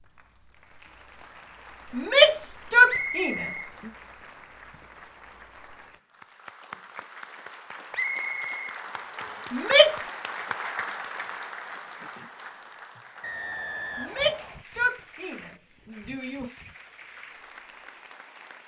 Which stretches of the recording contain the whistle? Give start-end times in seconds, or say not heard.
2.9-3.7, 7.9-9.5, 13.2-14.7.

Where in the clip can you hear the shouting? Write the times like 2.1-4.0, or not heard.
1.9-3.9, 9.5-10.1, 13.9-16.5.